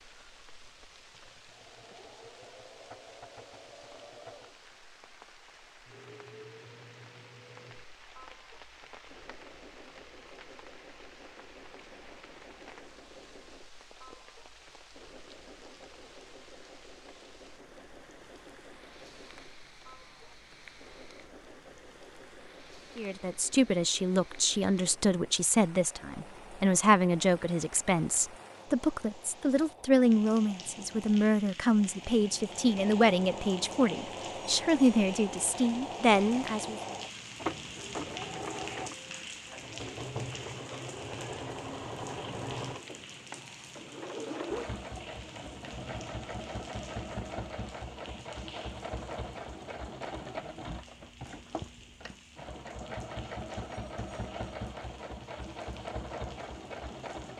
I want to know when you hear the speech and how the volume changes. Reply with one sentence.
The speech can be heard from 22.9 to 36.8 s, at a steady volume.